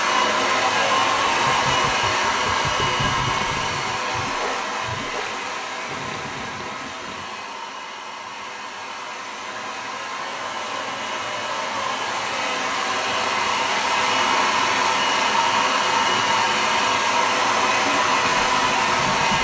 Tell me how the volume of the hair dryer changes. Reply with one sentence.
The volume of the hair dryer goes down, then up.